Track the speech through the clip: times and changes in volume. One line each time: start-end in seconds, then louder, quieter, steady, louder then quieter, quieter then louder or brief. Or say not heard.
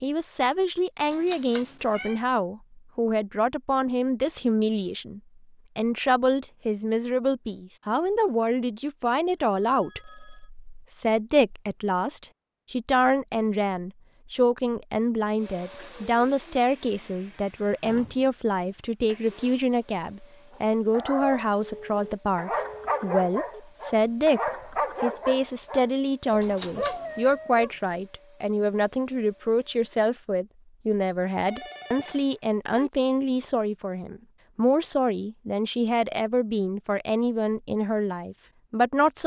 0.0-39.2 steady.